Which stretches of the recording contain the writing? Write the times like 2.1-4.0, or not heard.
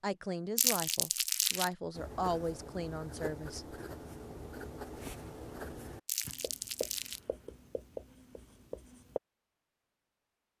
1.9-9.2.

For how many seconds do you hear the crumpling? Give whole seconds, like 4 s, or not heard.
2 s.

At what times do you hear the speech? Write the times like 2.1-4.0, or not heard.
0.0-3.6.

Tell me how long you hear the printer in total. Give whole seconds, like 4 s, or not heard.
not heard.